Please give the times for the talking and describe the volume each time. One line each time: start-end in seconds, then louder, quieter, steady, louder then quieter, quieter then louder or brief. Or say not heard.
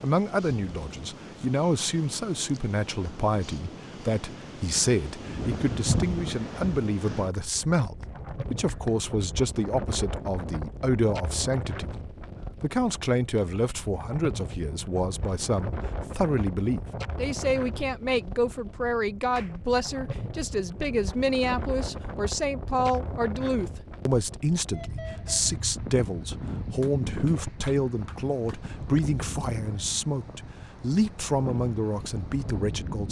0.0-11.9 steady
12.6-33.0 steady.